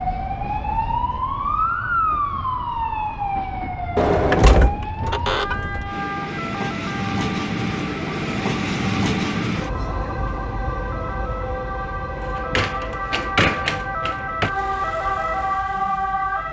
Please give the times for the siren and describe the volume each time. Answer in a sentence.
The siren can be heard from 0.0 to 16.4 s, getting quieter then louder.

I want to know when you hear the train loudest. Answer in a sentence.
The volume of the train peaks at 9 seconds.